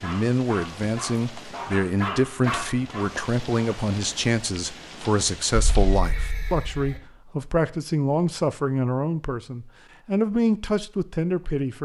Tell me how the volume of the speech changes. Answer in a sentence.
The loudness of the speech stays about the same.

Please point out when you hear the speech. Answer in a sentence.
The speech can be heard from 0.0 to 11.7 s.